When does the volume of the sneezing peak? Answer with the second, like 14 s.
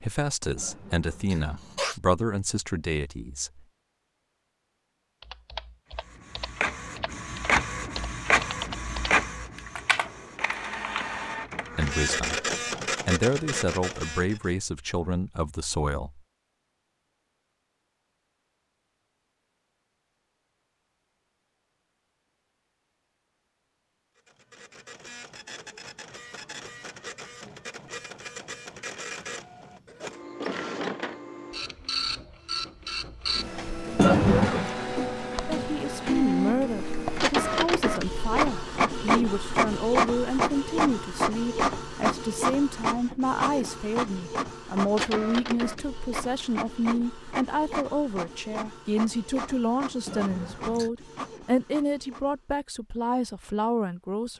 34 s.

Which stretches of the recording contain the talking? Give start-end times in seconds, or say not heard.
0.0-3.6, 11.8-12.4, 13.1-16.2, 35.5-54.3.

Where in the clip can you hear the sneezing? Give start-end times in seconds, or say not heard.
0.6-2.0, 34.0-34.7, 50.0-50.9.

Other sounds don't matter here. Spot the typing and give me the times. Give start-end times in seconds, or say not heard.
5.2-11.1.